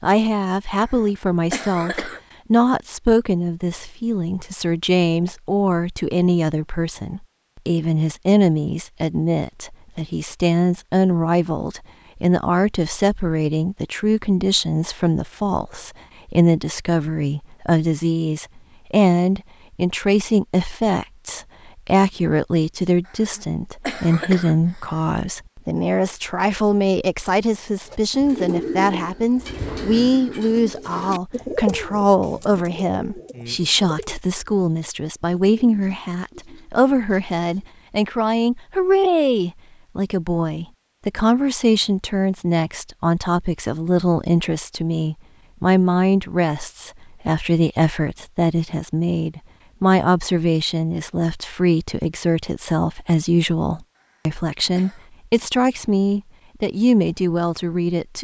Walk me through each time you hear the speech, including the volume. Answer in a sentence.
The speech can be heard from 0.0 to 58.1 s, at a steady volume.